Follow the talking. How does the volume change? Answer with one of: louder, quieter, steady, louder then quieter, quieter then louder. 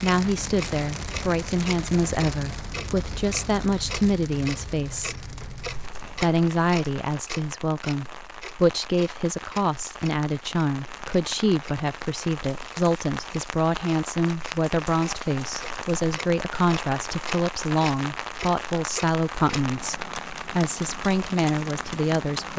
steady.